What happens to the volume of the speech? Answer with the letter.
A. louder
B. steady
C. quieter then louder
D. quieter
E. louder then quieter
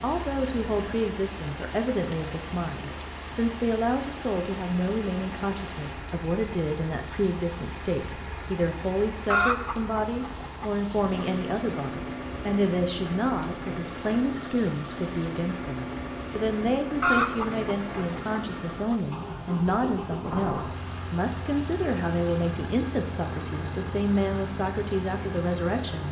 B.